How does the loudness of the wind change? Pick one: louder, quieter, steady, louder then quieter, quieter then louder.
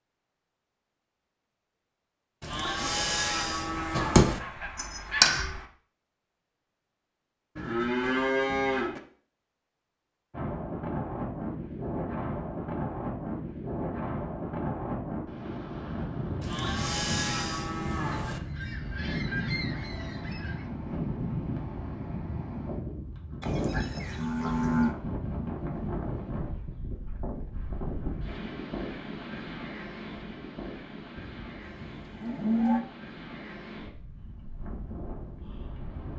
quieter.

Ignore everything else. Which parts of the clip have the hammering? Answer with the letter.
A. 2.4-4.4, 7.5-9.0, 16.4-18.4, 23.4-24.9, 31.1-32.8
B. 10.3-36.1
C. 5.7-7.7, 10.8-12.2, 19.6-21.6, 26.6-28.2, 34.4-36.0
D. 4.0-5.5
D.